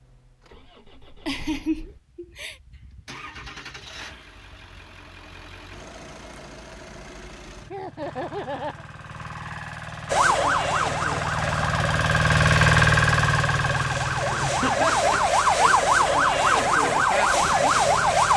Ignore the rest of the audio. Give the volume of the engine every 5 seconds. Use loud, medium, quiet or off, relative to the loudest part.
quiet, quiet, loud, quiet.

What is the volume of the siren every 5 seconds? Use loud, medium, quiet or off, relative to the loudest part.
off, off, medium, loud.